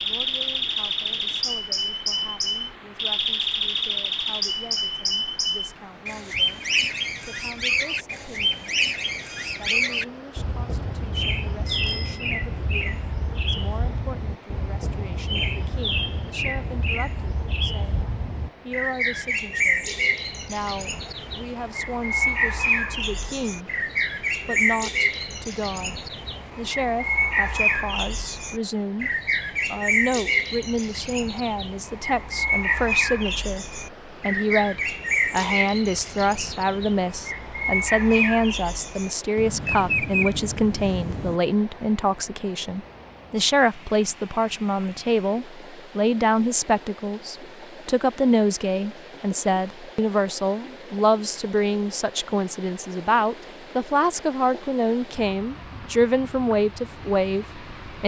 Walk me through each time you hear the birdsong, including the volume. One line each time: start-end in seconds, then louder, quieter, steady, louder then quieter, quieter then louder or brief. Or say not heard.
0.0-41.4 steady.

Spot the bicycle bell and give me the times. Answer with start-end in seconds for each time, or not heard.
11.7-12.3.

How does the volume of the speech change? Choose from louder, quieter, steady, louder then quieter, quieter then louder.
louder.